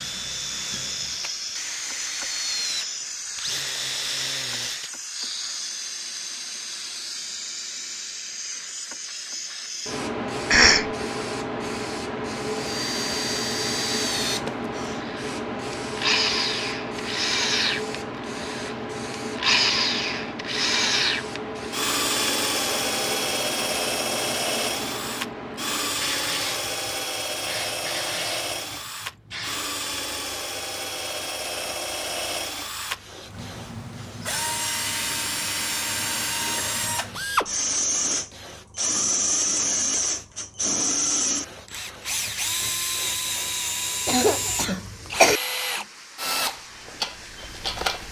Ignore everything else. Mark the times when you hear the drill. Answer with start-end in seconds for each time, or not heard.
0.0-4.9, 12.6-48.0.